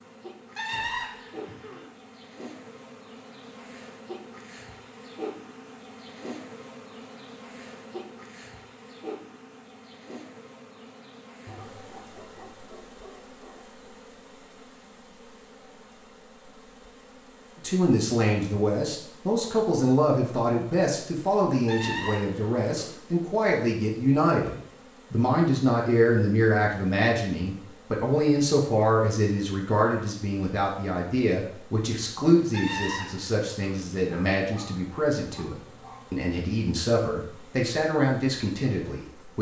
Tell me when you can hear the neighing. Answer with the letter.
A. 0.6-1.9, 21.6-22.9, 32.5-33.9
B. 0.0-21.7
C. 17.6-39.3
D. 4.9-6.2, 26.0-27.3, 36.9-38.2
A.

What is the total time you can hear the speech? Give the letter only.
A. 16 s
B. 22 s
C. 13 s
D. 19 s
B.